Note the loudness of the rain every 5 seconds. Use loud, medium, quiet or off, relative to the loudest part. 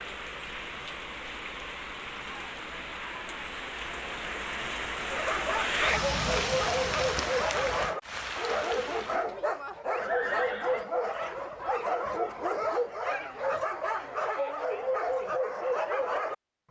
medium, loud, off, off.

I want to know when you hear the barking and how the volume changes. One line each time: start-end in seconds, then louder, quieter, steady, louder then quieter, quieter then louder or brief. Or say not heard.
5.0-16.4 steady.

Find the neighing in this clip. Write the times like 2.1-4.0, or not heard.
9.9-10.8.